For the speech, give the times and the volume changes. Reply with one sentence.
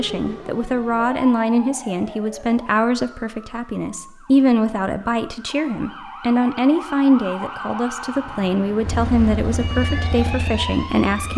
You can hear the speech from 0.0 to 11.3 s, at a steady volume.